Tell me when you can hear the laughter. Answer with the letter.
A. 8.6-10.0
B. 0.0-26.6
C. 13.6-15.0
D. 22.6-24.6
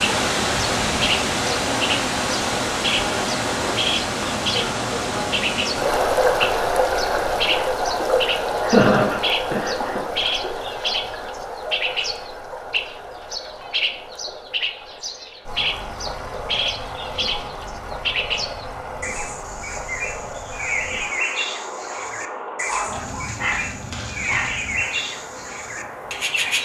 A.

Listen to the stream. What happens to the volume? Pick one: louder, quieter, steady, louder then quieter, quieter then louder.
quieter.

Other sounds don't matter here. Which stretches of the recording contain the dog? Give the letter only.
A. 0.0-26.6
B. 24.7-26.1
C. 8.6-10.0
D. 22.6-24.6
D.